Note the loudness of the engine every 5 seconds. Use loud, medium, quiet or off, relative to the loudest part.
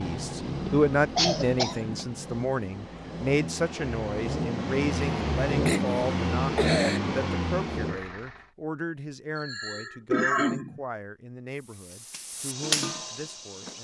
medium, loud, off.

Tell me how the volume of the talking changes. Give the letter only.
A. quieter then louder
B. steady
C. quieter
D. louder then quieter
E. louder
C.